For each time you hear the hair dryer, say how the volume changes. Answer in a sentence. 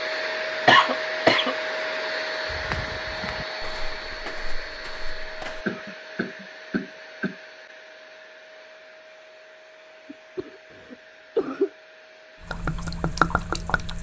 You can hear the hair dryer from 0.0 to 13.9 s, getting quieter.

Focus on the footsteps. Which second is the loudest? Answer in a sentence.
The loudest moment of the footsteps is at 3 seconds.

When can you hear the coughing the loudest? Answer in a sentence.
The volume of the coughing peaks at 1 second.